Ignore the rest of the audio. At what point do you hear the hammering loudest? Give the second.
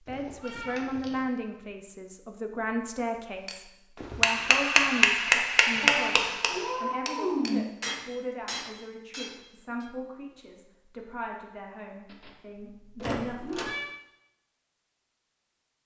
5 s.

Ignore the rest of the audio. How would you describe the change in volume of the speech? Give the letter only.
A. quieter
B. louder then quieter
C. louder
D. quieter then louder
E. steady
A.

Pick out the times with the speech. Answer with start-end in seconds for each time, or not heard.
0.1-13.6.